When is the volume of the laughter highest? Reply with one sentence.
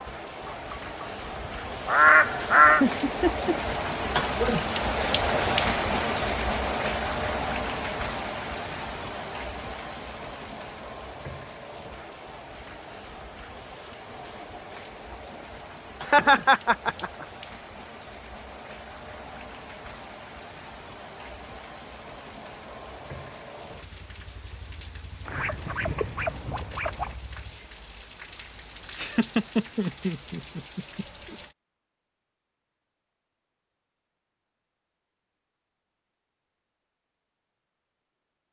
The volume of the laughter peaks at 16 seconds.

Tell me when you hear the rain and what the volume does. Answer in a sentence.
You can hear the rain from 0.0 to 31.6 s, getting quieter.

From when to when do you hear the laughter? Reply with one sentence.
The laughter can be heard from 2.8 to 3.5 s, from 16.0 to 17.2 s and from 28.9 to 31.4 s.